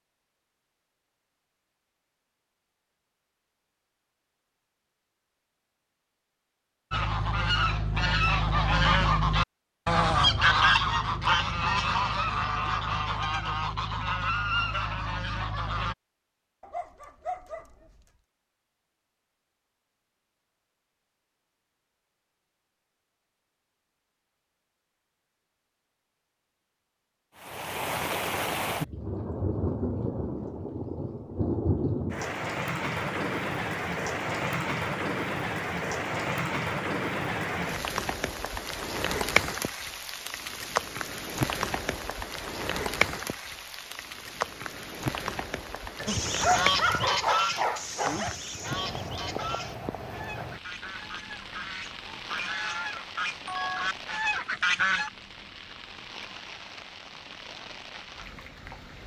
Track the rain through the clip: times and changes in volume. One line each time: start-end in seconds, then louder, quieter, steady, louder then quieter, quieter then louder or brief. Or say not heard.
27.4-59.0 quieter.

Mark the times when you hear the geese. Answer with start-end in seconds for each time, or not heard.
6.9-15.9, 46.0-55.1.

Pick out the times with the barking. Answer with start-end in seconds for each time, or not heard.
16.6-18.1, 46.0-48.4.